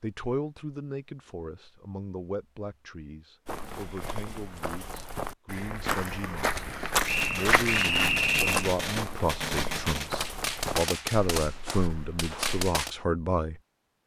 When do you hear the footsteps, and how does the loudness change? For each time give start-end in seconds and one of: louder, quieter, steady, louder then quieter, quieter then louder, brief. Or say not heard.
3.5-12.7 louder then quieter.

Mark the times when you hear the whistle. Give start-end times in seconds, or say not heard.
7.0-8.7.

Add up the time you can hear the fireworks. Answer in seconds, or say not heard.
6 s.